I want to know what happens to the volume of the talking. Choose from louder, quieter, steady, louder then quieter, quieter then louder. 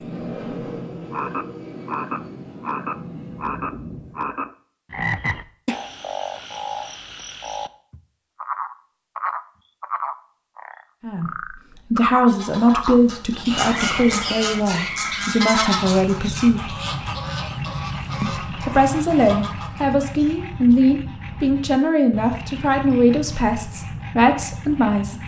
steady.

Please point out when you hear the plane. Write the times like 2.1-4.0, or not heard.
0.0-4.5.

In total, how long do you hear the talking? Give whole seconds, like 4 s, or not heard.
13 s.